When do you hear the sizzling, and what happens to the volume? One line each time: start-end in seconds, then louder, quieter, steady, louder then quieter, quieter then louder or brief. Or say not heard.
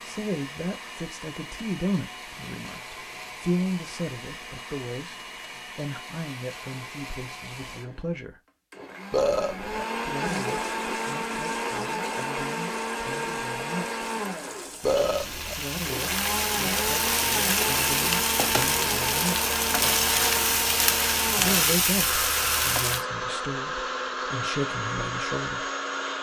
10.2-23.1 louder.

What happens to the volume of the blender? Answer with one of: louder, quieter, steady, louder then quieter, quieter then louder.
louder.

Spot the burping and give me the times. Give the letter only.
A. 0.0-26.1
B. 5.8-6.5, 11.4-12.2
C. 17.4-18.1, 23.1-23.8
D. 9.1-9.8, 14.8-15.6
D.